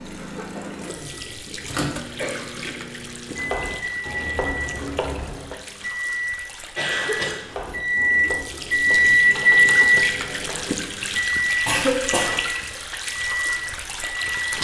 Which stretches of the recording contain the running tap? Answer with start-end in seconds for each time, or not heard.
0.0-14.5.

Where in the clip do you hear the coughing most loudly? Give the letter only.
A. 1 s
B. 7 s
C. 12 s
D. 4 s
C.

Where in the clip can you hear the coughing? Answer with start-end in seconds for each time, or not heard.
0.1-0.8, 2.1-2.8, 6.5-7.4, 11.7-12.4.